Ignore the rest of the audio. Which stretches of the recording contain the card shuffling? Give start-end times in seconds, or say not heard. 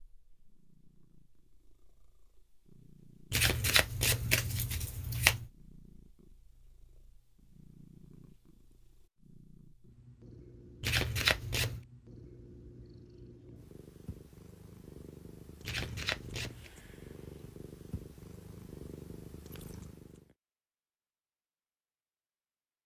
3.3-5.5, 10.8-11.8, 15.6-16.7.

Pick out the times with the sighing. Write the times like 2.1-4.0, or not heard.
not heard.